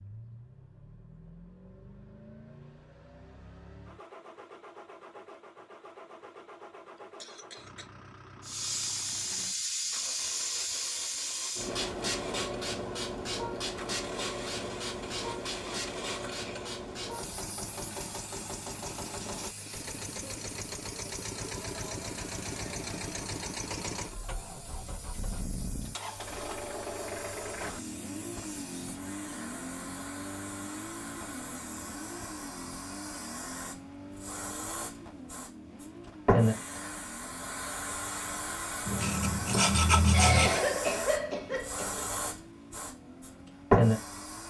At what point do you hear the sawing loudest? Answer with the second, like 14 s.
40 s.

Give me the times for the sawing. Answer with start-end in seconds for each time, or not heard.
38.9-40.6.